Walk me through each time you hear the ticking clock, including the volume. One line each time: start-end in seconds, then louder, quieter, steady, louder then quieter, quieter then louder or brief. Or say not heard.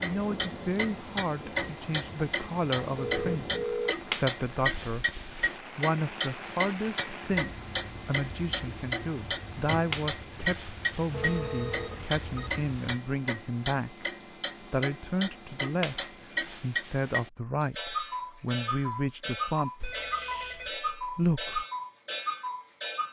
0.0-23.0 steady.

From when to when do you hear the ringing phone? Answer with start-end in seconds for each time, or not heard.
3.0-4.0, 11.1-12.5, 19.8-20.7.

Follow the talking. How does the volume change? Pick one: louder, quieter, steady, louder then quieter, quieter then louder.
steady.